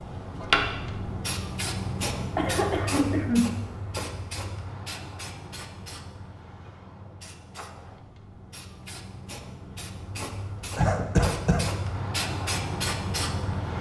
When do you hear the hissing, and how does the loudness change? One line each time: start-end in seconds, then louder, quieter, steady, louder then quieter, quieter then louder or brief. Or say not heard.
0.0-13.7 quieter then louder.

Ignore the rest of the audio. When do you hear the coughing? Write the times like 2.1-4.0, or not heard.
2.4-3.5, 10.8-11.7.